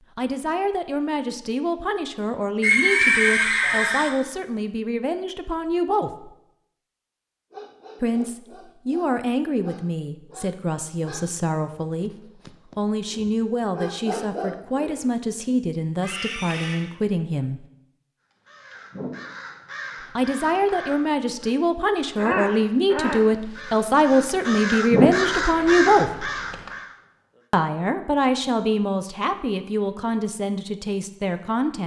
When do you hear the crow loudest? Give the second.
25 s.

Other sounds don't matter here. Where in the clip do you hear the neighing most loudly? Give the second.
3 s.